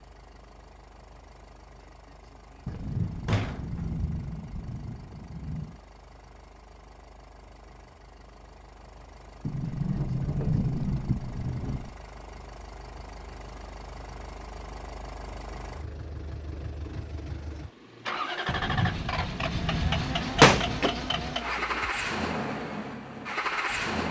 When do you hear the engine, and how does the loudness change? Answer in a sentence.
You can hear the engine from 0.0 to 24.0 s, getting louder.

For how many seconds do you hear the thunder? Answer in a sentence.
The thunder can be heard for 6 seconds in total.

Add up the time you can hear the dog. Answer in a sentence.
The dog can't be heard in this clip.